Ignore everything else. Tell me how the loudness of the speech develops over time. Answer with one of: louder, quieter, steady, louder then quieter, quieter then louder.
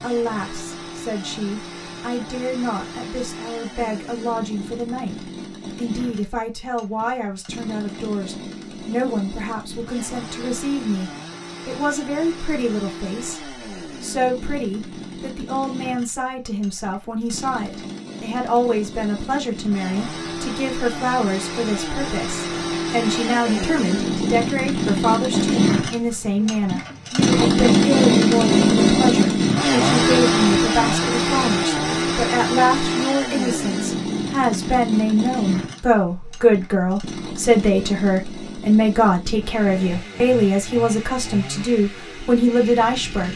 louder.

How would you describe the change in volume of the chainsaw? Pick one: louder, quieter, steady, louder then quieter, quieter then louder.
louder then quieter.